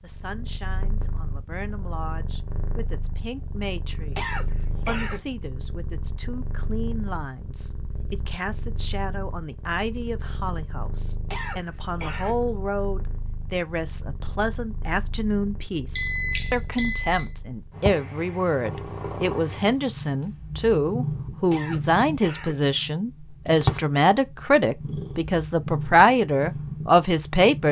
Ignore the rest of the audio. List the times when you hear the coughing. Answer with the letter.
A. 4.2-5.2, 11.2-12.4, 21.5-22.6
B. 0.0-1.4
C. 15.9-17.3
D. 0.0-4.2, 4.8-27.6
A.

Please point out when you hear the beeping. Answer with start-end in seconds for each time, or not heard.
15.9-17.3.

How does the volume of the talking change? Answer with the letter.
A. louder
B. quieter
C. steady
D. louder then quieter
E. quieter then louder
A.